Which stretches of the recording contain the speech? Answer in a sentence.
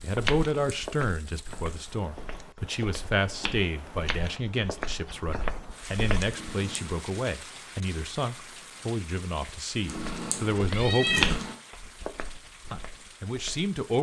The speech can be heard from 0.0 to 11.2 s and from 12.7 to 13.9 s.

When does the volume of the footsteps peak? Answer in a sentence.
The volume of the footsteps peaks at 11 seconds.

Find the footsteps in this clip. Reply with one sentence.
The footsteps can be heard from 0.0 to 6.3 s and from 9.8 to 13.7 s.